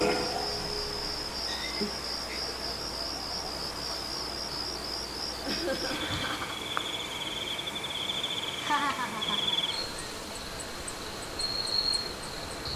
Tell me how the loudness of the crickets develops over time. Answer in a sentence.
The loudness of the crickets stays about the same.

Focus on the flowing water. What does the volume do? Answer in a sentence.
The volume of the flowing water stays about the same.